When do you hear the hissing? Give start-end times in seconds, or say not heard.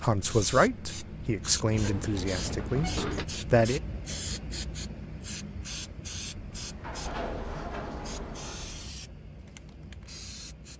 0.0-10.7.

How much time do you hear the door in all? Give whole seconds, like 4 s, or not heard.
4 s.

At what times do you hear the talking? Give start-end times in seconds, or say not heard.
0.0-3.8.